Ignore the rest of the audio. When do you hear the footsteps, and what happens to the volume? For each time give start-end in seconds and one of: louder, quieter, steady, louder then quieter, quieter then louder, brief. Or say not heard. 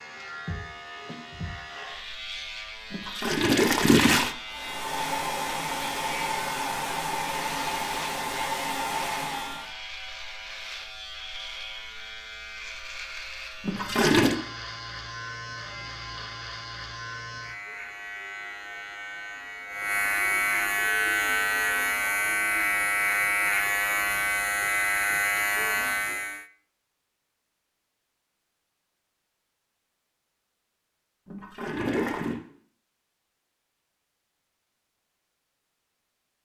not heard.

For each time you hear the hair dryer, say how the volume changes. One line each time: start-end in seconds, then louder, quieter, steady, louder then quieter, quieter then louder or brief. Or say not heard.
4.5-9.7 steady.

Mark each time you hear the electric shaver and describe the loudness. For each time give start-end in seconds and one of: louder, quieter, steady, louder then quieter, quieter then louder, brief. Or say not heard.
0.0-26.4 louder.